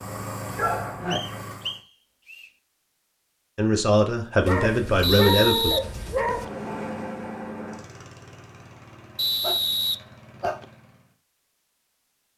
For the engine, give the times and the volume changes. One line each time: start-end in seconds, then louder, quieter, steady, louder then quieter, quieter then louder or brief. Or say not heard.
0.0-1.8 brief
6.1-11.2 quieter.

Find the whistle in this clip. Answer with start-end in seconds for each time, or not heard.
1.1-2.5, 5.0-6.5, 9.2-10.7.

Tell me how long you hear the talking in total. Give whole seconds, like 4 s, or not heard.
2 s.